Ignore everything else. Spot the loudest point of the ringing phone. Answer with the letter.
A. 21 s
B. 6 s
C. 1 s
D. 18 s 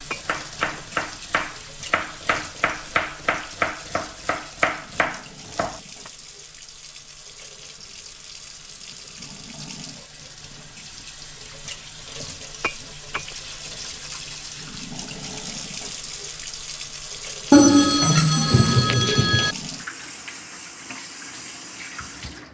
D.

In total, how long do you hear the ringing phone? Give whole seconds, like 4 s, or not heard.
2 s.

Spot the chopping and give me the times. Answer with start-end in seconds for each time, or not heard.
0.2-6.1.